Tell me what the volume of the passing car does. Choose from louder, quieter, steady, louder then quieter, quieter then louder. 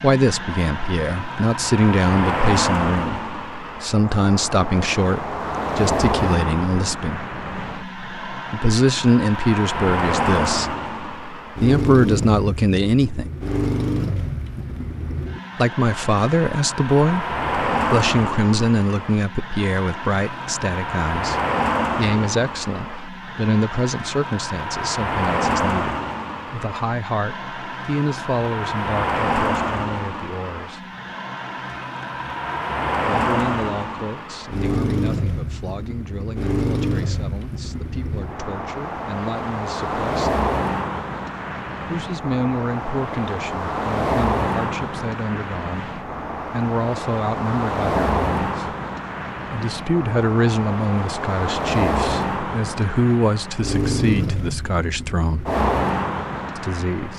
steady.